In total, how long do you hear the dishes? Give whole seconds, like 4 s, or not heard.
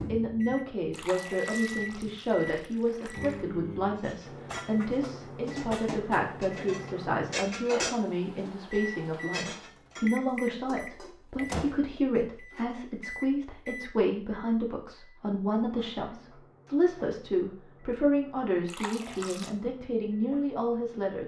9 s.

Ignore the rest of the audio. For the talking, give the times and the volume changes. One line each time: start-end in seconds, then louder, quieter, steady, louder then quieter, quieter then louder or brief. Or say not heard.
0.1-21.2 steady.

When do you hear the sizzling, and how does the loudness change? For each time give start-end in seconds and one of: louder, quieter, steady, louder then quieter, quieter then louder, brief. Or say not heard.
not heard.